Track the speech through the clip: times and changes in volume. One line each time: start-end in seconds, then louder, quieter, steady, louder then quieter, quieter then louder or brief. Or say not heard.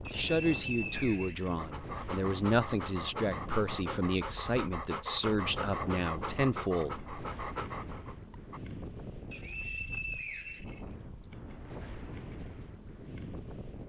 0.1-7.0 steady.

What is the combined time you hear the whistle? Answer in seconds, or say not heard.
4 s.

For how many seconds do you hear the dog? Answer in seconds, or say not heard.
7 s.